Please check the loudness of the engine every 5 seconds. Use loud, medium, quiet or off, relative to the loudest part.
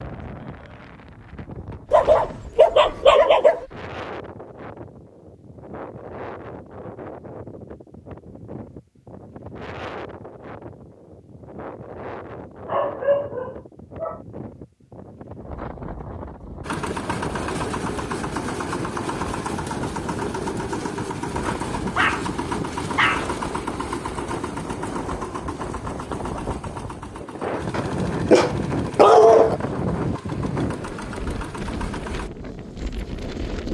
off, off, off, loud, loud, medium, medium.